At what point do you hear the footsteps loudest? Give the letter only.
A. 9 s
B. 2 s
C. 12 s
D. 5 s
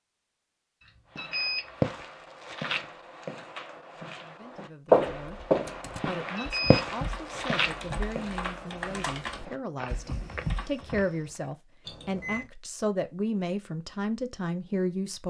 D.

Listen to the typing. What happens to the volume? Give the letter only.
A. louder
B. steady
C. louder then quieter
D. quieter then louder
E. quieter
A.